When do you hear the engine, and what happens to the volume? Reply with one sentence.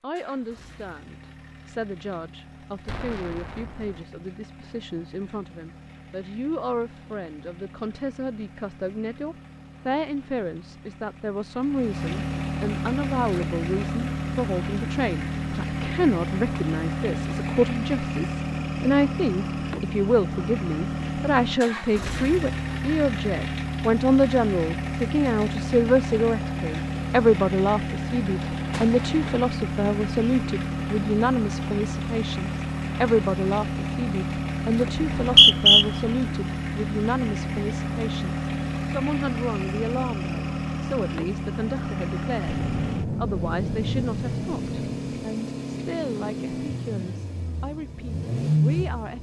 The engine can be heard from 0.1 to 49.1 s, getting louder.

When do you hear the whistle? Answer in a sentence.
The whistle can be heard from 35.0 to 35.9 s.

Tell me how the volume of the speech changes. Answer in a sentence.
The loudness of the speech goes up, then down.